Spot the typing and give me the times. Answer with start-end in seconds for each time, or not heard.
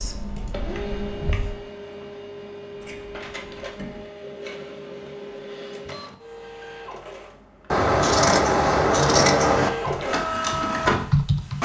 0.0-1.6, 9.8-11.6.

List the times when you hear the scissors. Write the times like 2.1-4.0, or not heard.
2.8-4.0, 7.7-9.7.